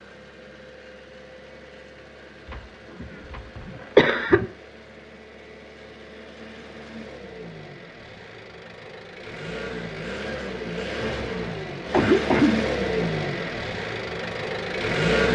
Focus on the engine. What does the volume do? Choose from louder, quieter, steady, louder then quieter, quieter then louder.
louder.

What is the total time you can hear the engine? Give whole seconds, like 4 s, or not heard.
15 s.